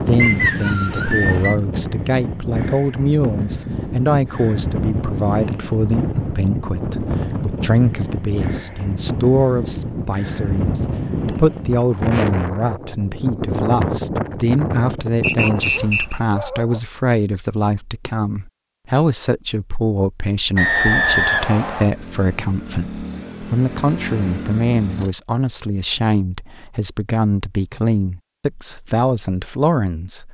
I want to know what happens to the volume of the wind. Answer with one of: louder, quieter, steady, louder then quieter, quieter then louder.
steady.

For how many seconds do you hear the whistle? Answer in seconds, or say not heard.
4 s.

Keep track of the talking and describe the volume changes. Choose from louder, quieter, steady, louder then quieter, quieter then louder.
steady.